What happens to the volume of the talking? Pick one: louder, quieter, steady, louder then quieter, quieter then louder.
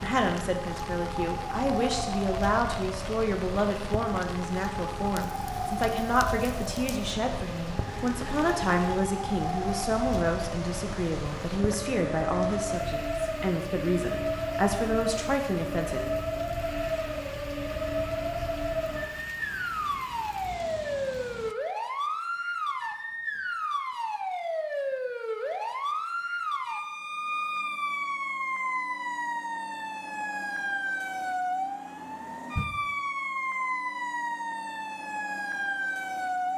steady.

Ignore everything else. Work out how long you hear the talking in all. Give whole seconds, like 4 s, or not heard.
16 s.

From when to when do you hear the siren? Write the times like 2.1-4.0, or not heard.
0.0-36.5.